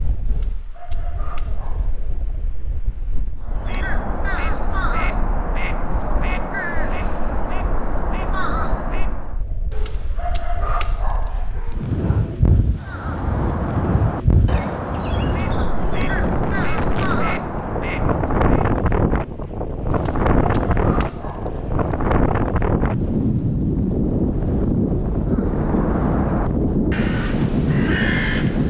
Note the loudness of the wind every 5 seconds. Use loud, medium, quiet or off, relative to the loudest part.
quiet, quiet, medium, loud, loud, loud.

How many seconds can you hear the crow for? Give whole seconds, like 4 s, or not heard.
15 s.